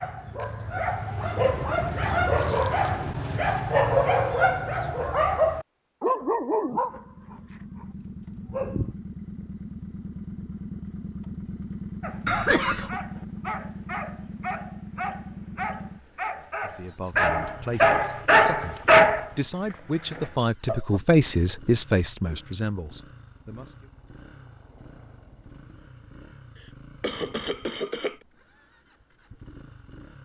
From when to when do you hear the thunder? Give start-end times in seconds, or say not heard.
not heard.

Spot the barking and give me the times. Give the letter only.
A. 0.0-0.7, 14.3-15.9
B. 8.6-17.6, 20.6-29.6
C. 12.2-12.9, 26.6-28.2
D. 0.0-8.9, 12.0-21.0
D.